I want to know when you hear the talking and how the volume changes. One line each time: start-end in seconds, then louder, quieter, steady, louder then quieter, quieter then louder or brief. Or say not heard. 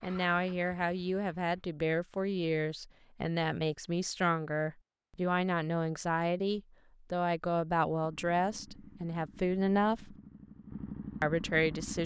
0.0-10.2 steady
11.2-12.0 brief.